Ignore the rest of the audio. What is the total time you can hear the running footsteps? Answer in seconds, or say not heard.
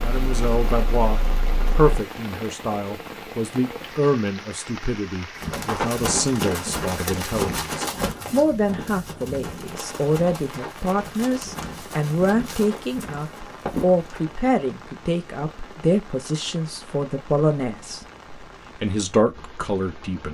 9 s.